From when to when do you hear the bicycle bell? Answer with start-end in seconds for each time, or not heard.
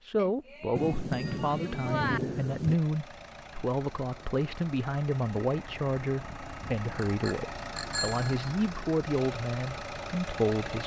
0.1-2.2, 7.0-8.4.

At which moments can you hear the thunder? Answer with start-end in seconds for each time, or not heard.
0.8-2.8.